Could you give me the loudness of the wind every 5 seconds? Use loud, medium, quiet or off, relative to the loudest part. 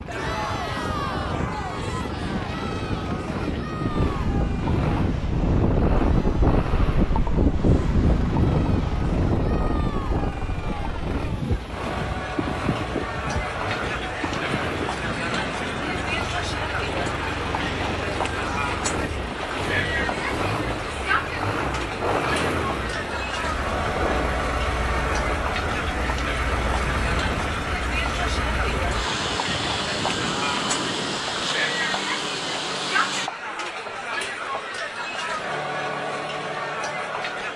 medium, loud, medium, medium, medium, medium, medium, off.